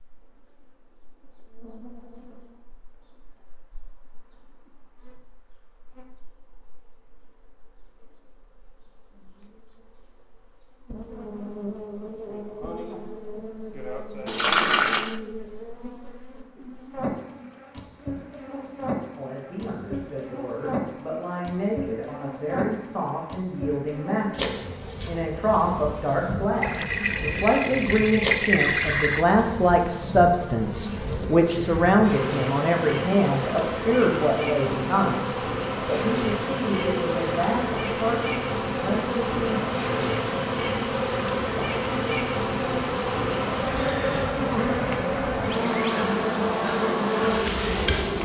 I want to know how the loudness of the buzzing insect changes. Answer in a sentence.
The volume of the buzzing insect goes up.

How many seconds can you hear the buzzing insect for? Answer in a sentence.
You can hear the buzzing insect for 48 seconds altogether.